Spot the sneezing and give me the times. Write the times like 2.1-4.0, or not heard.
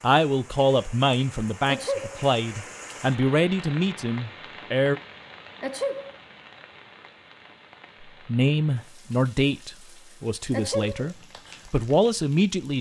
1.6-2.2, 5.6-6.2, 10.5-11.1.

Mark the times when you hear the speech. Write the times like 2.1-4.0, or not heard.
0.0-5.0, 8.2-12.7.